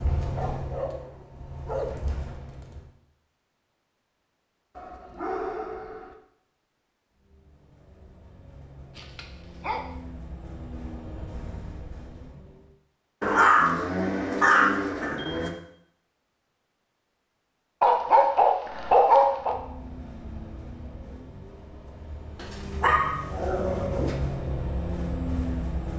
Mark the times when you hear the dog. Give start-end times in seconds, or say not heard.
0.3-2.2, 4.8-6.2, 8.9-9.9, 13.2-15.5, 17.8-19.6, 22.4-24.1.